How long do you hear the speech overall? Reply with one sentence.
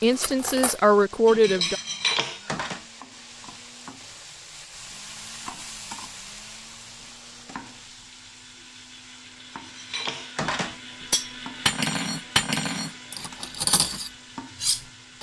The speech can be heard for 2 seconds in total.